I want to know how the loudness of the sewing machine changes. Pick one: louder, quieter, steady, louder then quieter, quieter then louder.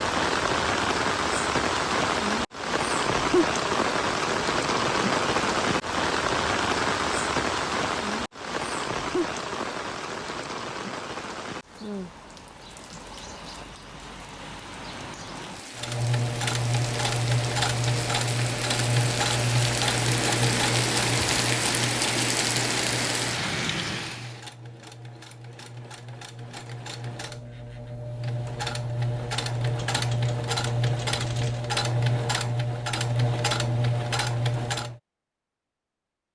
quieter then louder.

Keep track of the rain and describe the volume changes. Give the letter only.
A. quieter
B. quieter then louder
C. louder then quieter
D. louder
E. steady
B.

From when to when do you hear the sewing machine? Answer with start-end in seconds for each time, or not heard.
15.8-35.0.